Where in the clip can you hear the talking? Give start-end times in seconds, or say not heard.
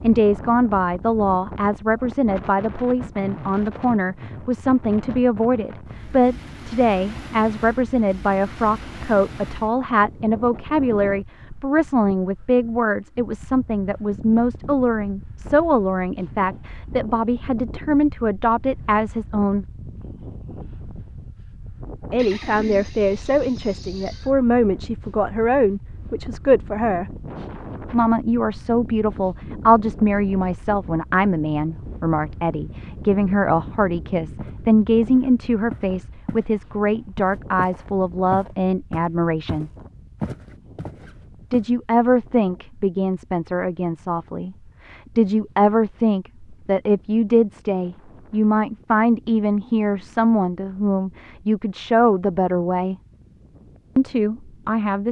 0.0-19.6, 22.1-27.2, 27.9-39.7, 41.5-53.0, 54.0-55.0.